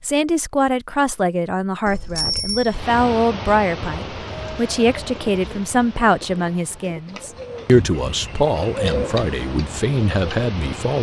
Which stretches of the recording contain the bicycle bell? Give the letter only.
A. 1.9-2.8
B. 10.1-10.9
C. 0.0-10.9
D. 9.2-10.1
A.